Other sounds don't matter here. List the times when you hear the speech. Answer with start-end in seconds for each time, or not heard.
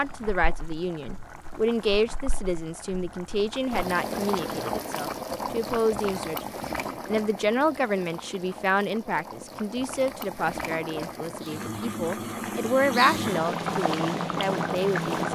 0.0-15.3.